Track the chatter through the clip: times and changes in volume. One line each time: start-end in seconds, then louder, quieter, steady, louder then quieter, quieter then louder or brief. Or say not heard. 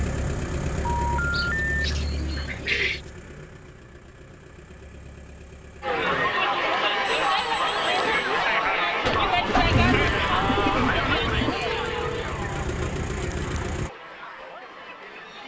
5.8-15.4 quieter.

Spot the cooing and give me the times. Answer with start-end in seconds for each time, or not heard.
1.3-3.0, 9.0-11.6.